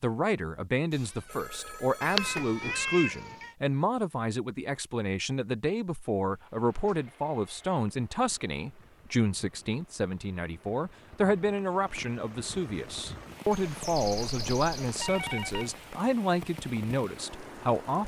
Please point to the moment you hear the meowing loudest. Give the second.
2 s.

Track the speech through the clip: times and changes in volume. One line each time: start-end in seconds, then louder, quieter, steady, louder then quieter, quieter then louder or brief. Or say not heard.
0.0-18.0 steady.